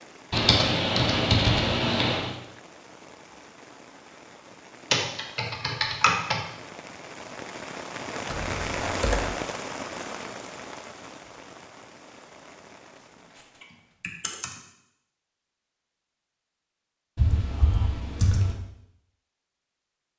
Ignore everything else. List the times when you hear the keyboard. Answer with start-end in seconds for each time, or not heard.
0.3-2.3, 4.9-6.4, 8.2-9.2, 13.6-14.6, 17.1-18.6.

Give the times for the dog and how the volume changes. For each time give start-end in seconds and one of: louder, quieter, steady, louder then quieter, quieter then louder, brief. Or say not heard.
not heard.